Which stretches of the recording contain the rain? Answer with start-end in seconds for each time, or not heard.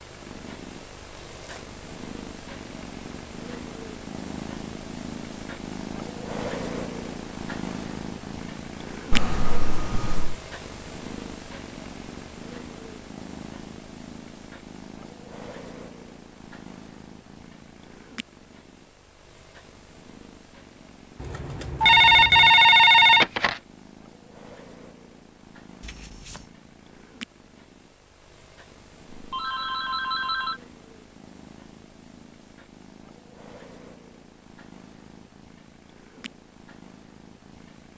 not heard.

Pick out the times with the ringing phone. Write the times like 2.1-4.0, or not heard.
9.1-10.3, 21.8-23.6, 29.1-30.6.